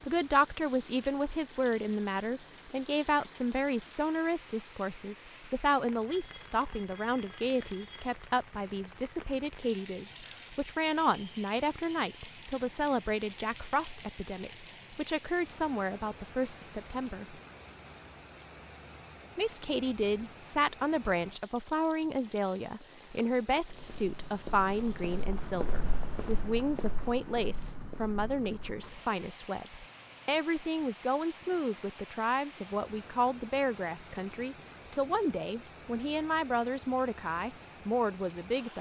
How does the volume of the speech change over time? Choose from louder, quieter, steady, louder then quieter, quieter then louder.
steady.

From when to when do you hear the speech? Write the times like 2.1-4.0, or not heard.
0.0-17.4, 19.4-38.7.